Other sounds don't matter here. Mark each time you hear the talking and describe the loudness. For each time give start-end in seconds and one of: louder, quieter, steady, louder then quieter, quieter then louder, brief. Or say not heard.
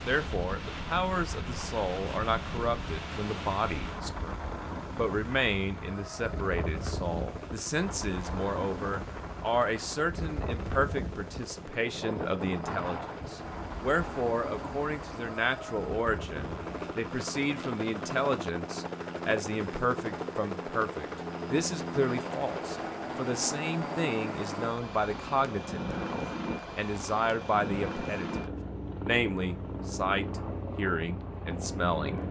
0.0-4.3 steady
5.0-32.2 steady.